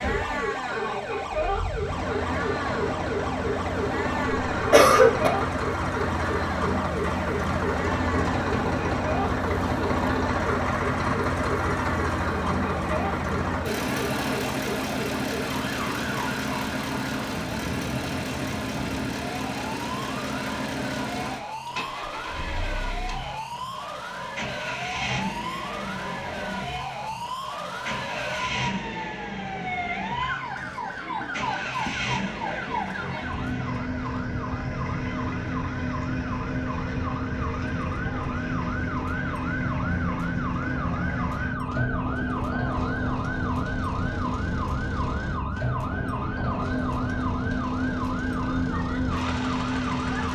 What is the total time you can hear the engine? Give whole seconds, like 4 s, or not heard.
50 s.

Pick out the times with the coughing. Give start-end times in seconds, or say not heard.
4.3-5.3.